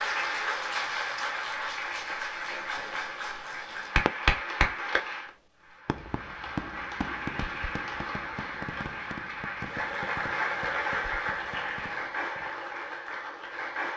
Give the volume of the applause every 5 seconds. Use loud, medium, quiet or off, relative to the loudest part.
loud, medium, loud.